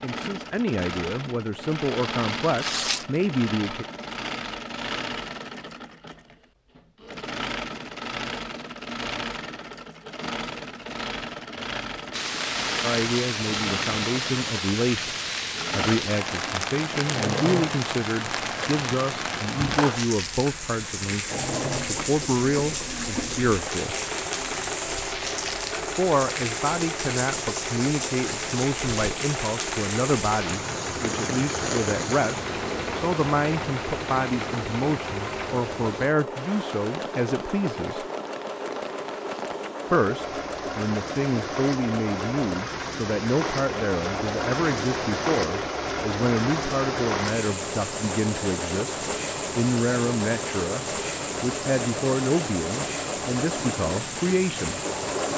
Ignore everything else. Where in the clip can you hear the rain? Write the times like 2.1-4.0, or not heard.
12.1-55.3.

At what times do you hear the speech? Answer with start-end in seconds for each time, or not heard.
0.0-3.9, 12.8-23.9, 25.9-38.0, 39.9-49.0, 49.5-54.8.